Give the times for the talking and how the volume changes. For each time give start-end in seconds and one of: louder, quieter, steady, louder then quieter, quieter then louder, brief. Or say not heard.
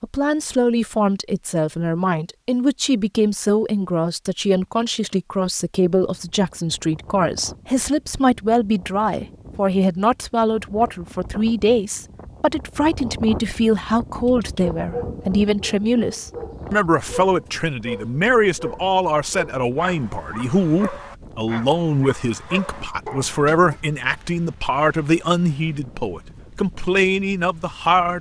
0.0-28.1 steady.